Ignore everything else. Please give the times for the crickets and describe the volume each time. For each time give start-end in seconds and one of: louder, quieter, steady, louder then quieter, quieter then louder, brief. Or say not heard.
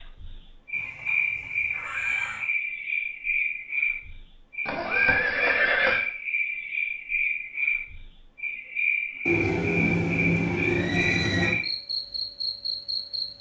0.0-13.3 steady.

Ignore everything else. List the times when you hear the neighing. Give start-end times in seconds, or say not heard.
0.7-2.5, 4.7-6.0, 9.2-11.6.